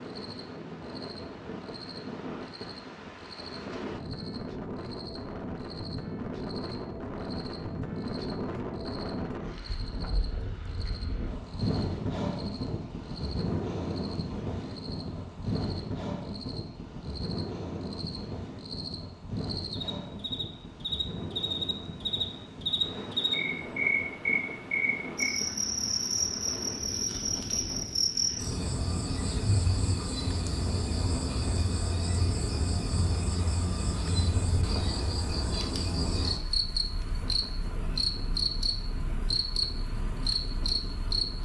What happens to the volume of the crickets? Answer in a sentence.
The loudness of the crickets goes up.